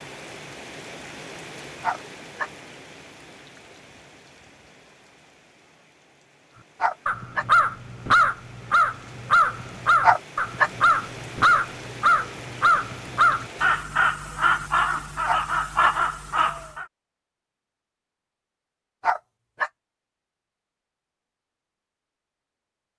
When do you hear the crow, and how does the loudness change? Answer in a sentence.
You can hear the crow from 7.0 to 16.9 s, at a steady volume.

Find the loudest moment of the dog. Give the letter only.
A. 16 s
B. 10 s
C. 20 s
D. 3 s
B.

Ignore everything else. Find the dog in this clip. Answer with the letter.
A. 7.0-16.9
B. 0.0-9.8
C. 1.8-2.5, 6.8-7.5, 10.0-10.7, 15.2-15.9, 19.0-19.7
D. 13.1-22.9
C.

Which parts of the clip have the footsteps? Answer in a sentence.
You can't hear the footsteps here.